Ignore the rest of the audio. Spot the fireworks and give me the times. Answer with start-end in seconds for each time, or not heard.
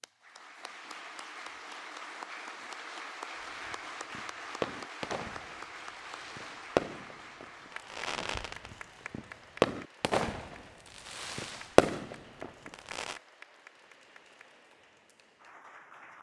3.4-13.2.